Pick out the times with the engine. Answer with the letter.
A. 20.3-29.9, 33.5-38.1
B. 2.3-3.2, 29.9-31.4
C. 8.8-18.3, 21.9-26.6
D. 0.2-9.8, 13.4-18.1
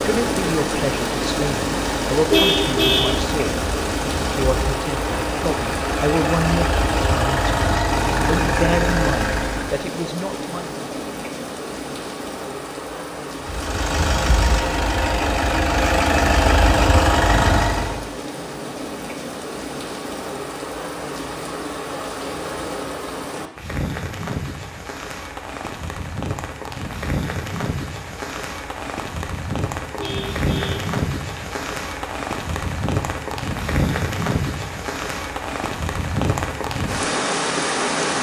D.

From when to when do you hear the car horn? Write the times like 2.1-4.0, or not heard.
2.3-3.2, 29.9-31.4.